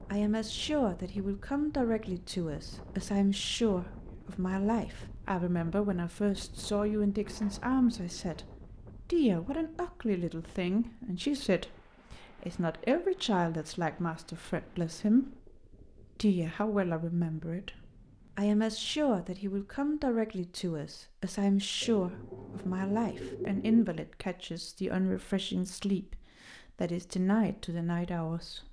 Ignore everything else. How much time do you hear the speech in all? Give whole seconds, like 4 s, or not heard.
27 s.